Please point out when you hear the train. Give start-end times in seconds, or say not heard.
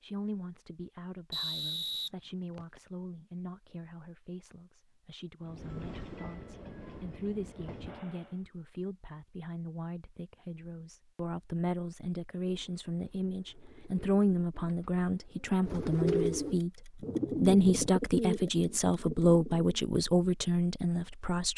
5.4-8.4.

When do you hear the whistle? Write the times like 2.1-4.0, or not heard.
1.3-2.8.